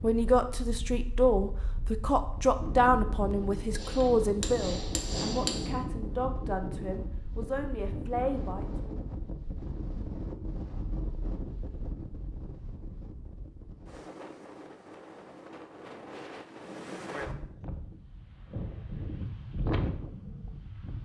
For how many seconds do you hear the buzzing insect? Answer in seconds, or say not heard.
not heard.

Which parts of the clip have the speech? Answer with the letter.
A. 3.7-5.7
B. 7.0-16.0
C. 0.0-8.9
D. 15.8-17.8
C.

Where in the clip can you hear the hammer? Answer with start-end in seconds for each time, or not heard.
3.7-5.7.